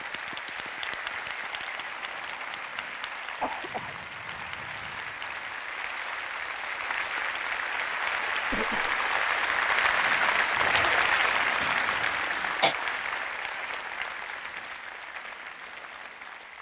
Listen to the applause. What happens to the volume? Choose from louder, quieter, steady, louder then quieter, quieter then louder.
louder then quieter.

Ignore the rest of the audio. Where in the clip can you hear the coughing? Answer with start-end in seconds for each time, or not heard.
3.4-4.0, 8.5-9.0, 11.6-12.8.